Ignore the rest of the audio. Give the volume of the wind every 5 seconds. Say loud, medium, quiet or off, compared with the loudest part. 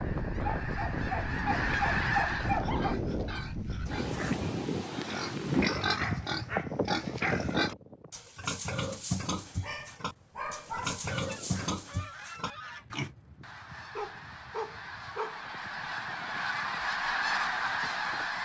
loud, loud, quiet, quiet.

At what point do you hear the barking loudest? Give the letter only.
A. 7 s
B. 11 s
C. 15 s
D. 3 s
D.